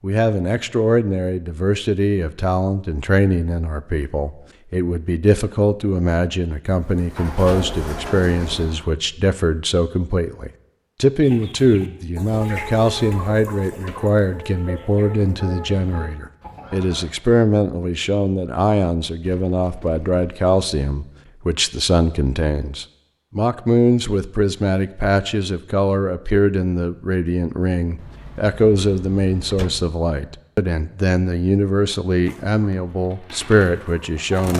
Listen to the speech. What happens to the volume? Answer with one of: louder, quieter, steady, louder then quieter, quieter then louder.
steady.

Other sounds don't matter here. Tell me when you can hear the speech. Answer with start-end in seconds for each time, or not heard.
0.0-34.5.